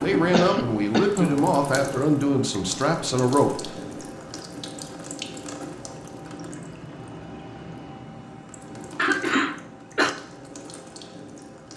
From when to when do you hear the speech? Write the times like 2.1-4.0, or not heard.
0.0-3.7.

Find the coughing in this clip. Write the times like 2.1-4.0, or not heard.
0.3-1.5, 8.9-10.2.